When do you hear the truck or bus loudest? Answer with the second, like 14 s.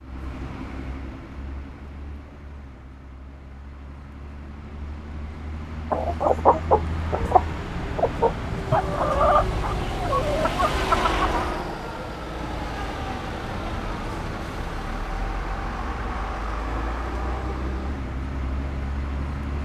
11 s.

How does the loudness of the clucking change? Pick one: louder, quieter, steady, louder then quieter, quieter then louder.
quieter.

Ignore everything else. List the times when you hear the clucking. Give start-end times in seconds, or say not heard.
5.9-11.6.